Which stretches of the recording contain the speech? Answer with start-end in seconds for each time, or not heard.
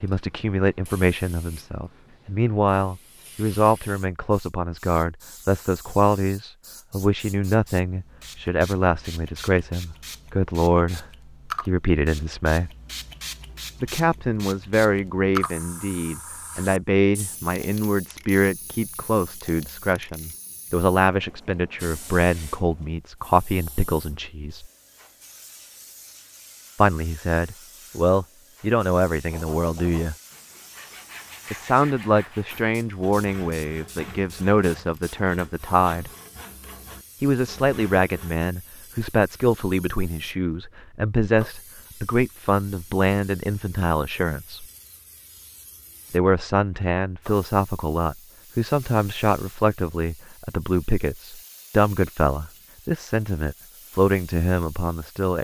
0.0-12.7, 13.8-24.7, 26.8-30.1, 31.5-36.1, 37.2-44.6, 46.1-55.3.